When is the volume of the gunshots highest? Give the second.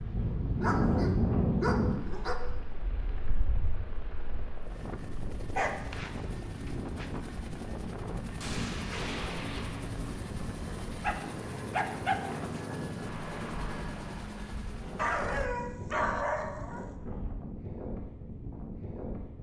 9 s.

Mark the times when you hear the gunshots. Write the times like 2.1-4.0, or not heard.
8.4-9.9.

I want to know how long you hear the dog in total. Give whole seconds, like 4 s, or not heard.
7 s.